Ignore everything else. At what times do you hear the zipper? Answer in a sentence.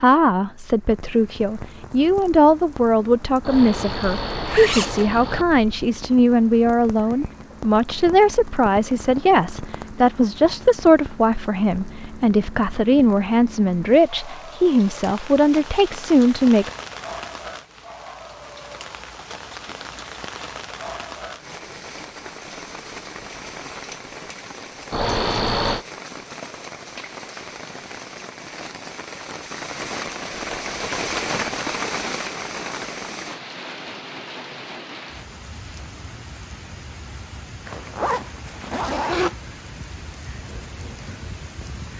You can hear the zipper from 3.5 to 5.5 s, from 24.9 to 25.9 s and from 37.6 to 39.4 s.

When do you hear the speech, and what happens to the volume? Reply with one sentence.
The speech can be heard from 0.0 to 16.7 s, at a steady volume.